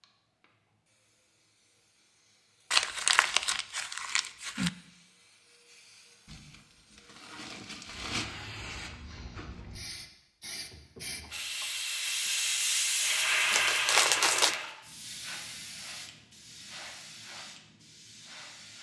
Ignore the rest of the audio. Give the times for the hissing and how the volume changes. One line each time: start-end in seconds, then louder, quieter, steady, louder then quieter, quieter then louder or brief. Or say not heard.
0.0-18.7 louder then quieter.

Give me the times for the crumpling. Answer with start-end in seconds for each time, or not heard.
2.7-4.7, 6.2-8.2, 13.5-14.6.